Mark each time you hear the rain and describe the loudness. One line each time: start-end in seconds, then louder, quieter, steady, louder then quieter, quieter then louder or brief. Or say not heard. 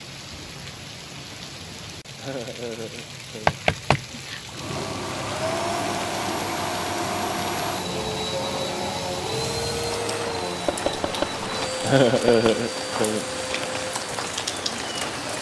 0.0-15.3 louder.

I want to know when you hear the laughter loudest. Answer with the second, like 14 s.
12 s.